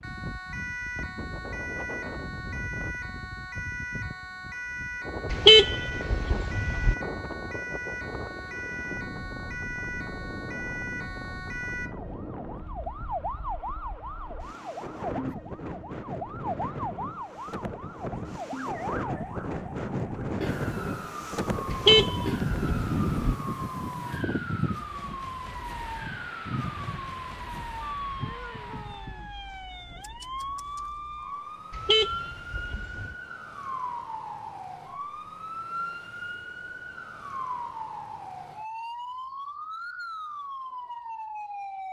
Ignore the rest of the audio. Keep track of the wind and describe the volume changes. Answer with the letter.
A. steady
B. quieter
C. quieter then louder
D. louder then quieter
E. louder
D.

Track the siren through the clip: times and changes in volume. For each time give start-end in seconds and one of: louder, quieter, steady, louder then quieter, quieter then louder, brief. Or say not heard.
0.0-41.8 steady.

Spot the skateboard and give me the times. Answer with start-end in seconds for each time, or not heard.
not heard.